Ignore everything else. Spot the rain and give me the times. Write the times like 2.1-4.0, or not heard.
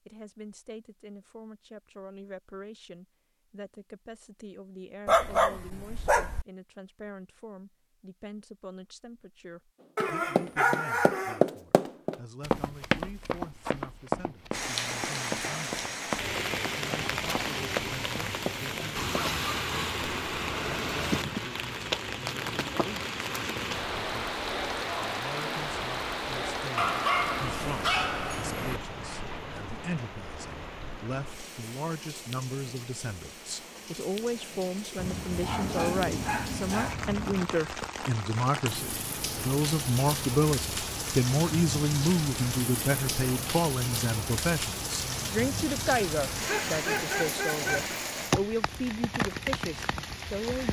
14.5-50.6.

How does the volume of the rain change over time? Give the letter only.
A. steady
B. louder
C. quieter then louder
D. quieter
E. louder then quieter
C.